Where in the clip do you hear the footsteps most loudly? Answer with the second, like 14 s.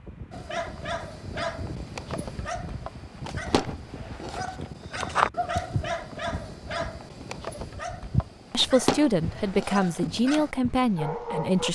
5 s.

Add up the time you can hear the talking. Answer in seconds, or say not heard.
3 s.